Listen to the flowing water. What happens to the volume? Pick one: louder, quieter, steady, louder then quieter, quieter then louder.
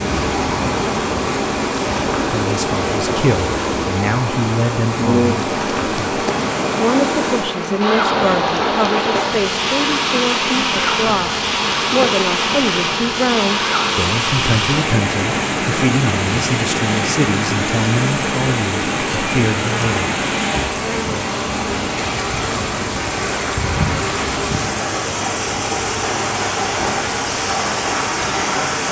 steady.